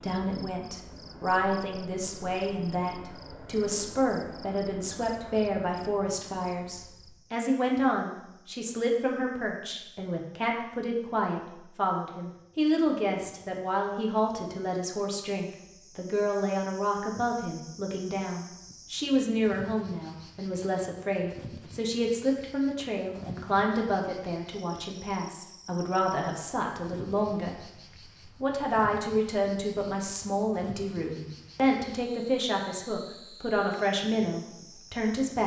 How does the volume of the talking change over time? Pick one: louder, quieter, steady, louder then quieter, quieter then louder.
steady.